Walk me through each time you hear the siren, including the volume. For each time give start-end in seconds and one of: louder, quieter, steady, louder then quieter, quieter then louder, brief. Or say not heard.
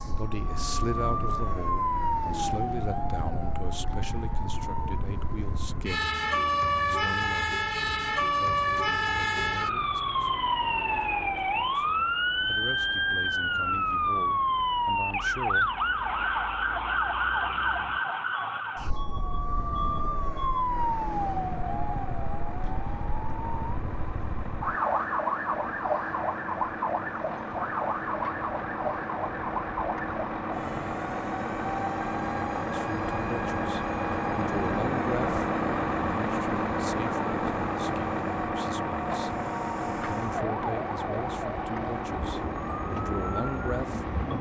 0.0-44.3 quieter.